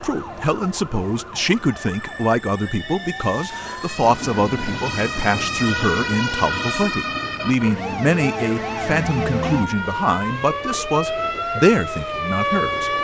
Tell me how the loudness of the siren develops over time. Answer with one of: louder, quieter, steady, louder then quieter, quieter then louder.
louder.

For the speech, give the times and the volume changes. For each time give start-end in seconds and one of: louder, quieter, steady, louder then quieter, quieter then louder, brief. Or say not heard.
0.0-12.9 steady.